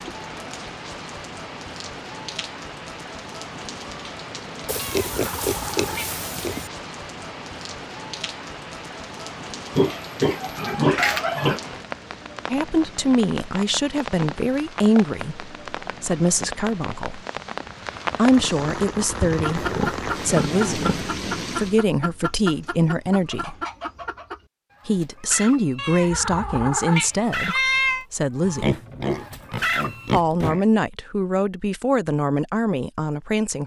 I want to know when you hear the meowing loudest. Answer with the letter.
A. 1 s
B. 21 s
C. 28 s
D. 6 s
C.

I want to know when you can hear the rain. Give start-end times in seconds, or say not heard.
0.0-21.8.